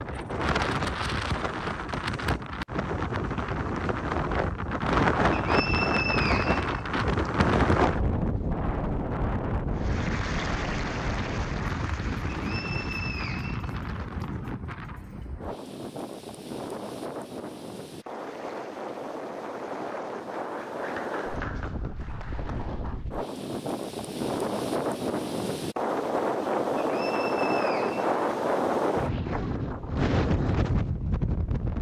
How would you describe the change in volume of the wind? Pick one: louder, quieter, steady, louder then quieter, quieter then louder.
quieter then louder.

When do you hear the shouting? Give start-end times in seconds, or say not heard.
not heard.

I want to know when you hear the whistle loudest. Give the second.
6 s.